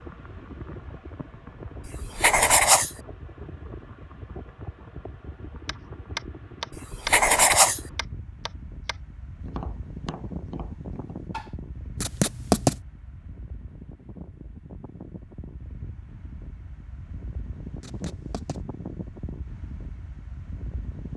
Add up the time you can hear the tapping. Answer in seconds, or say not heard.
6 s.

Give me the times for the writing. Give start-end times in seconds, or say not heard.
1.9-3.0, 6.9-7.8, 12.0-12.8, 17.8-18.6.